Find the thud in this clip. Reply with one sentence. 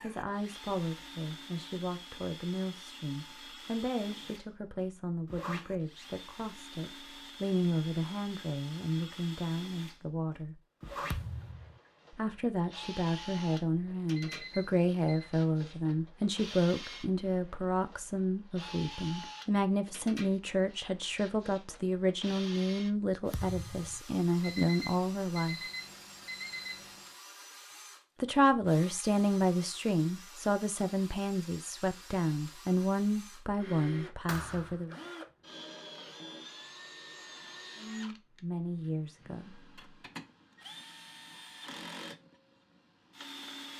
The thud can be heard from 11.1 to 11.8 s, from 23.3 to 24.1 s and from 34.2 to 34.9 s.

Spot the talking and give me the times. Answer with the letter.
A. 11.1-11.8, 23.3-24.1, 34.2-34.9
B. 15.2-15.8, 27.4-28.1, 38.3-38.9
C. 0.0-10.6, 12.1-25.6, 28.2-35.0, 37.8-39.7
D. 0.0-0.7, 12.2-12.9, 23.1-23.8
C.